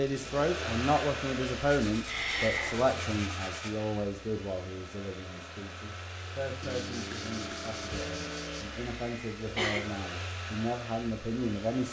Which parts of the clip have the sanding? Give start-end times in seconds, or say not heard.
1.6-3.7, 6.6-8.7.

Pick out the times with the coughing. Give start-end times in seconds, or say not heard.
2.0-2.8, 8.8-9.8.